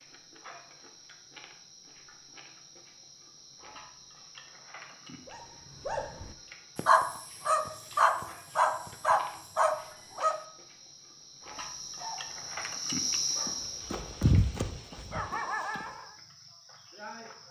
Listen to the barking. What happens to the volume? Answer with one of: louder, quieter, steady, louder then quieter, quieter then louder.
quieter.